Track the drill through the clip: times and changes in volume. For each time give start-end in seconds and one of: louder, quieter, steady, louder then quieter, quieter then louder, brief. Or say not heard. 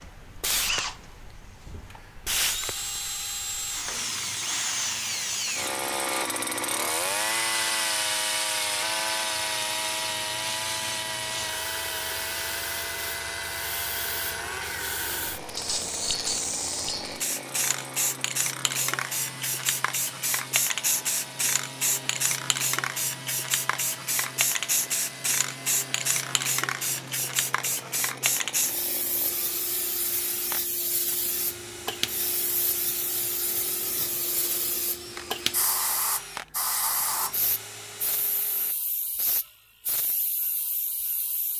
0.0-38.8 quieter.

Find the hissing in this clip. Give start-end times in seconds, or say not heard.
0.0-41.5.